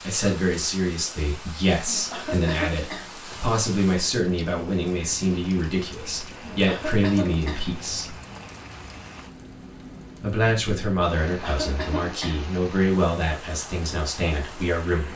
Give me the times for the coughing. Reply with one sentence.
You can hear the coughing from 1.9 to 3.4 s, from 6.4 to 8.0 s and from 11.2 to 12.6 s.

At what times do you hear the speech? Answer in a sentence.
The speech can be heard from 0.0 to 8.2 s and from 10.2 to 15.1 s.